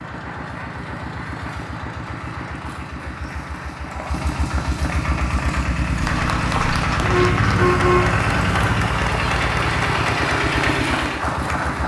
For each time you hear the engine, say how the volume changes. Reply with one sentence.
The engine can be heard from 0.0 to 11.8 s, getting louder.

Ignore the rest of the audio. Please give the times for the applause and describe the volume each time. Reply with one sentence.
The applause can be heard from 0.0 to 11.8 s, getting louder.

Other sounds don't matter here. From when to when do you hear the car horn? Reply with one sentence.
You can hear the car horn from 7.0 to 8.9 s.